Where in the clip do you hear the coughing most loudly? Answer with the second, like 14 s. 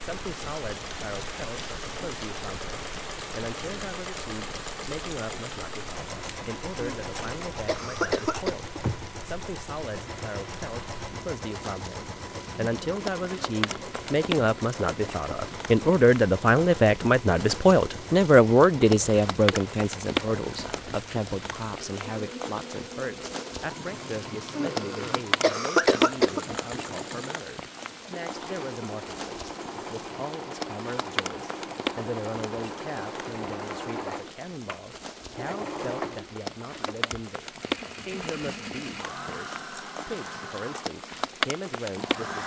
26 s.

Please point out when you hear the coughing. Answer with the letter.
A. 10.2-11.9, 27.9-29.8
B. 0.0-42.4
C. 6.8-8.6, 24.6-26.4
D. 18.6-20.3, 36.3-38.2
C.